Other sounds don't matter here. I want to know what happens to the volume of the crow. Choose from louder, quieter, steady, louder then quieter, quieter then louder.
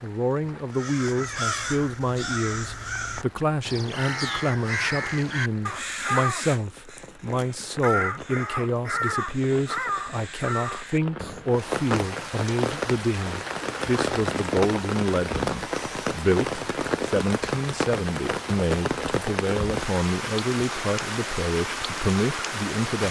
steady.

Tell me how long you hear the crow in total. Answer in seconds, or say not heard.
11 s.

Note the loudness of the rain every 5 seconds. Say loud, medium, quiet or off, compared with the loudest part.
quiet, quiet, loud, loud, loud.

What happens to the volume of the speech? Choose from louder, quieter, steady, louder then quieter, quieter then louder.
steady.